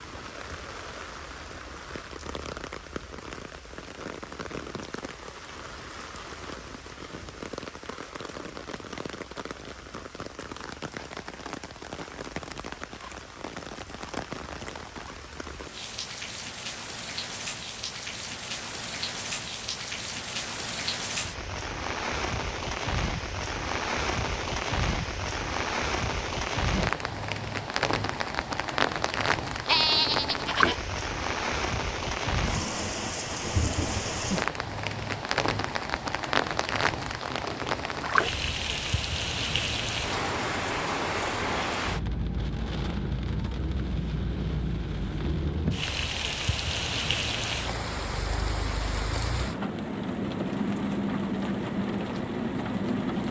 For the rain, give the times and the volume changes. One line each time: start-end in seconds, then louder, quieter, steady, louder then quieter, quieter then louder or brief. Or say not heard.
0.0-53.2 louder.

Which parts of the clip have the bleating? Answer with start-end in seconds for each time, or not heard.
29.6-30.8.